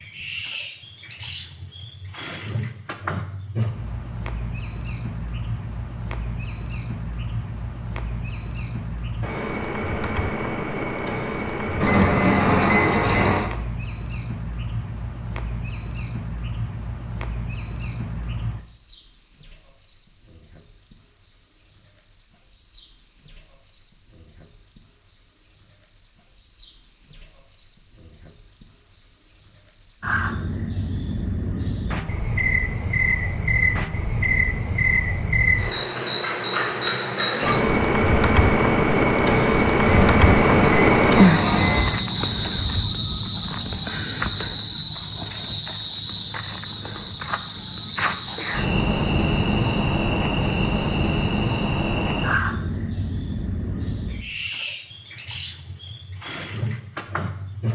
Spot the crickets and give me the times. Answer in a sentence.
You can hear the crickets from 0.0 to 57.6 s.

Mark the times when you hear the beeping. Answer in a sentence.
The beeping can be heard from 11.8 to 13.5 s and from 39.8 to 41.9 s.